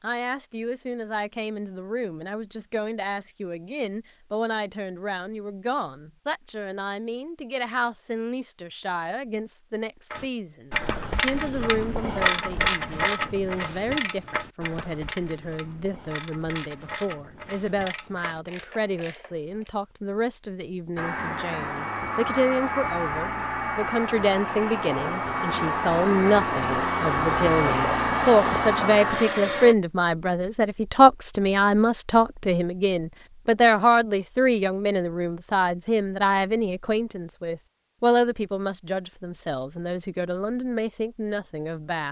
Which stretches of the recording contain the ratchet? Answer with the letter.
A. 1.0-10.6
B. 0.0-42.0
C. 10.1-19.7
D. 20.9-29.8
C.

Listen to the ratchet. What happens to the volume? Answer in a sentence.
The loudness of the ratchet goes down.